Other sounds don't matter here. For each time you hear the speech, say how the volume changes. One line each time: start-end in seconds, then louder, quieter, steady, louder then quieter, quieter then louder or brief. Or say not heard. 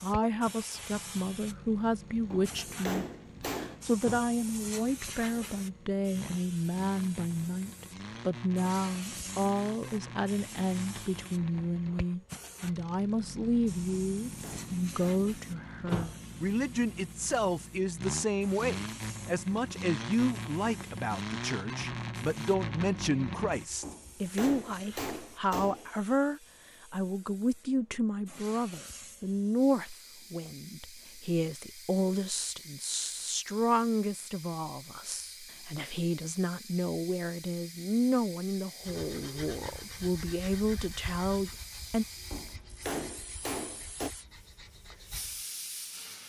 0.0-42.0 steady.